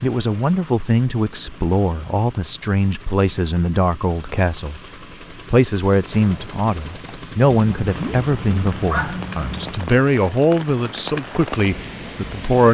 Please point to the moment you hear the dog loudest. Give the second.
9 s.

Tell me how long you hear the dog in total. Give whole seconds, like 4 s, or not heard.
2 s.